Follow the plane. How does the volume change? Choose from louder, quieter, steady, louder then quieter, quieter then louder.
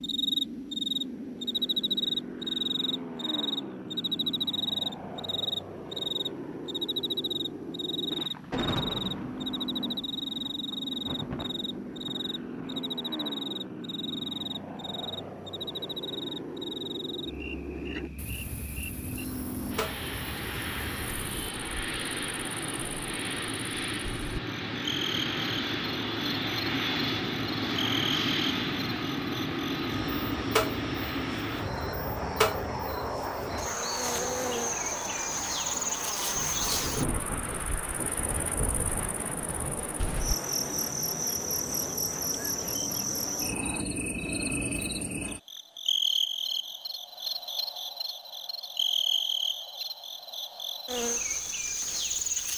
louder then quieter.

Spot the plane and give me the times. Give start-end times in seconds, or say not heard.
0.0-43.9.